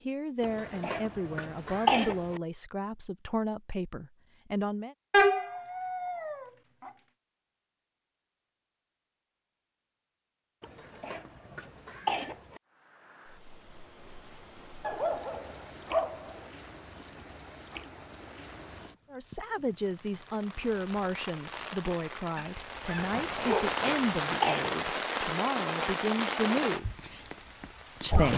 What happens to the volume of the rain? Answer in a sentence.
The volume of the rain goes up.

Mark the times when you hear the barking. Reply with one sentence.
The barking can be heard from 5.1 to 6.9 s, from 14.8 to 16.4 s and from 22.4 to 23.7 s.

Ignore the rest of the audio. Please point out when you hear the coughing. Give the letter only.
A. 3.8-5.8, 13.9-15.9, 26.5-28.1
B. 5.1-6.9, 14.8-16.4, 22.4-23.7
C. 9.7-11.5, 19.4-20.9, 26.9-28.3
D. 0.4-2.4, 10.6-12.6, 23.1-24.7
D.